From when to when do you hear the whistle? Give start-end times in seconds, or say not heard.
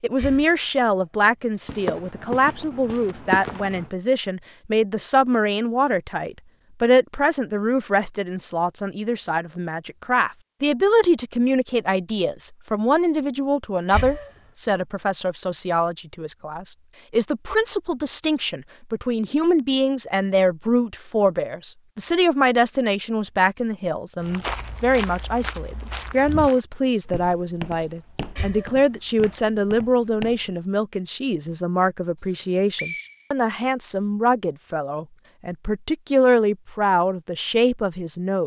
32.2-33.2.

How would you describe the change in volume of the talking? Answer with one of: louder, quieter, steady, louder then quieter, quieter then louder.
steady.